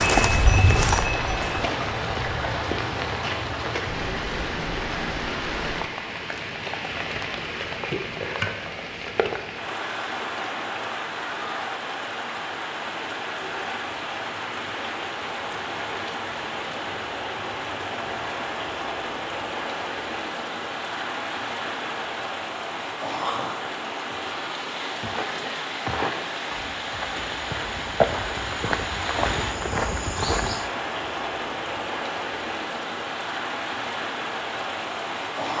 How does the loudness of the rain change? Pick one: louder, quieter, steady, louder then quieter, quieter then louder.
steady.